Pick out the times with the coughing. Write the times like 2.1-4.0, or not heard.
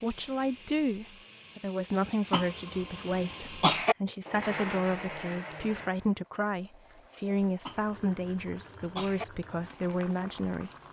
2.3-4.0, 7.7-9.2.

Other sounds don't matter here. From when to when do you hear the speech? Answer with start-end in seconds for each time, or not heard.
0.0-10.7.